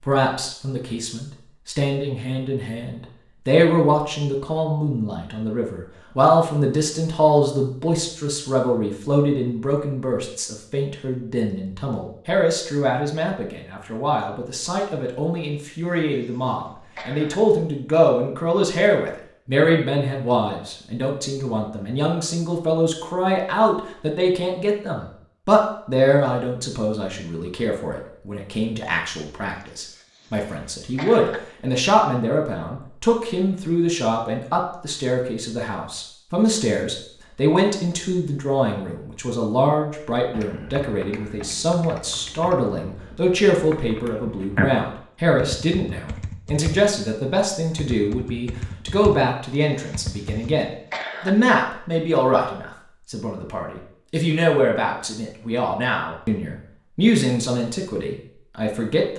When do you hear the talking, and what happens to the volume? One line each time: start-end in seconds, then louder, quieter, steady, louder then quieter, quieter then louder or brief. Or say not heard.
0.0-59.1 steady.